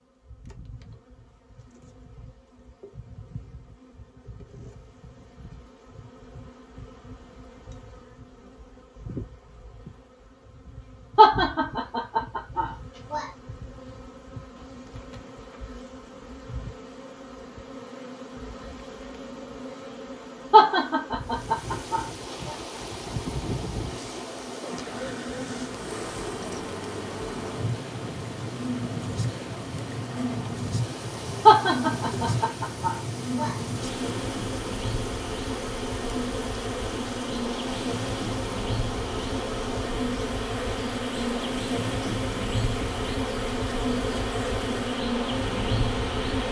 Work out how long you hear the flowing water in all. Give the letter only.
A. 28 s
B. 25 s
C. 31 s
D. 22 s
B.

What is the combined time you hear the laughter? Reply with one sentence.
You can hear the laughter for 6 seconds altogether.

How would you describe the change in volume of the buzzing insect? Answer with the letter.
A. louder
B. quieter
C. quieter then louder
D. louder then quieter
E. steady
A.